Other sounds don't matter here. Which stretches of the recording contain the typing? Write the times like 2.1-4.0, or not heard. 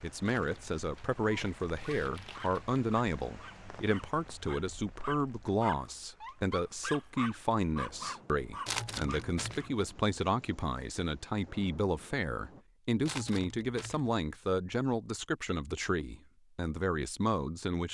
not heard.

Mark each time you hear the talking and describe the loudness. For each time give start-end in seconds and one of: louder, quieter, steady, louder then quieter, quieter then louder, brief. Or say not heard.
0.0-17.8 steady.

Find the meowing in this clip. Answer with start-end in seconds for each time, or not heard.
not heard.